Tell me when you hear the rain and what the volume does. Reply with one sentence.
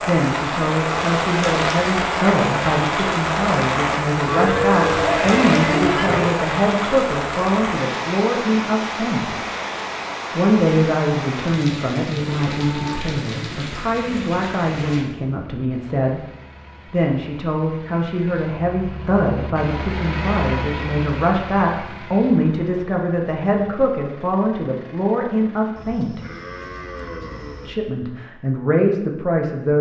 The rain can be heard from 0.0 to 15.1 s, getting quieter.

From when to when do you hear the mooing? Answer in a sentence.
The mooing can be heard from 4.2 to 6.3 s, from 12.2 to 14.2 s and from 25.8 to 27.8 s.